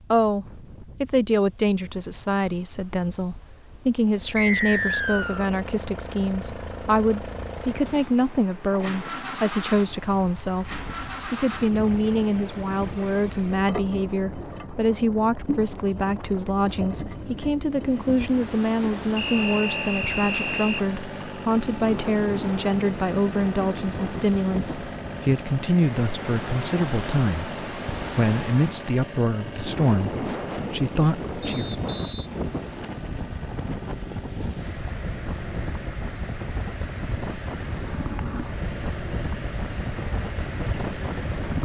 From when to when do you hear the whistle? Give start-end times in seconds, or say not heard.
4.3-5.5, 19.1-20.9, 31.4-32.3.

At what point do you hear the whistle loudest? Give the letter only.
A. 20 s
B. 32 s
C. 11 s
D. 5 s
D.